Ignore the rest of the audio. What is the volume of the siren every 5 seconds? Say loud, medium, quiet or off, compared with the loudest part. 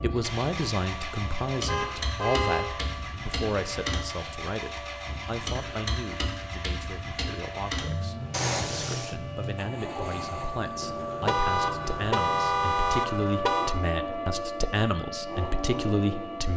medium, medium, loud, loud.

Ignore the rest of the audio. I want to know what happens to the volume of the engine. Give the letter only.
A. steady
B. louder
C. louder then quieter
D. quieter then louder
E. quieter
A.